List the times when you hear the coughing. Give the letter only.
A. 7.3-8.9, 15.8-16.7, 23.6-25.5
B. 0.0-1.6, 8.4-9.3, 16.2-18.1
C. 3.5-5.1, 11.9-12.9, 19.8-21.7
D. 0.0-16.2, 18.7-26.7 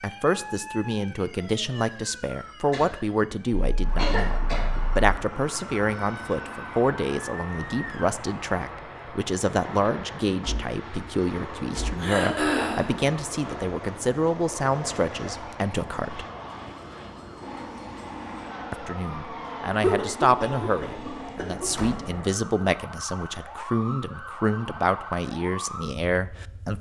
C.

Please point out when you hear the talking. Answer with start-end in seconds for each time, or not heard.
0.0-16.2, 18.7-26.7.